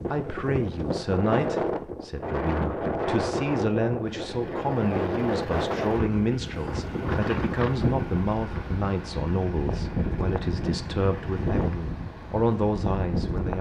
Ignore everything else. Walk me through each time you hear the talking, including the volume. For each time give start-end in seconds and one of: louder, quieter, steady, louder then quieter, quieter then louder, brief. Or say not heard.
0.1-13.5 steady.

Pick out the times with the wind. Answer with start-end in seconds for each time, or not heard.
0.0-13.5.